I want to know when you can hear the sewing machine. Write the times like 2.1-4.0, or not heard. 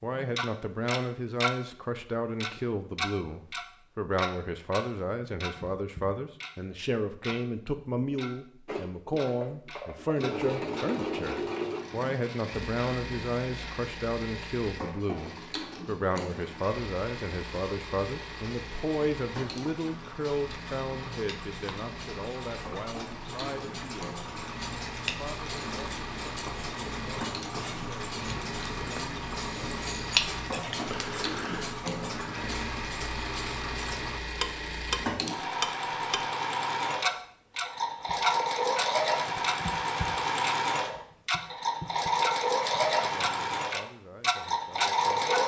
8.7-45.4.